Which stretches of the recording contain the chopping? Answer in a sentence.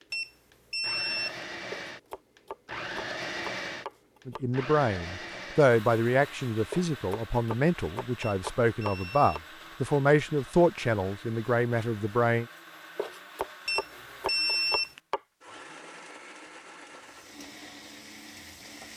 You can hear the chopping from 1.7 to 4.4 s, from 6.7 to 9.4 s and from 12.9 to 15.2 s.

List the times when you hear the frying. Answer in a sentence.
The frying can be heard from 16.9 to 18.9 s.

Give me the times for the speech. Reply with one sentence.
The speech can be heard from 4.2 to 12.4 s.